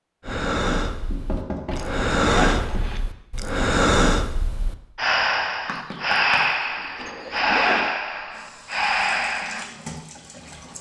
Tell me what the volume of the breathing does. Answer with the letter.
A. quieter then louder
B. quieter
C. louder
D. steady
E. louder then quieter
D.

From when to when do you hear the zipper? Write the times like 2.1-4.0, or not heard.
1.7-3.0, 7.0-7.9.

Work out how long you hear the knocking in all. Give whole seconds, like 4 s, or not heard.
4 s.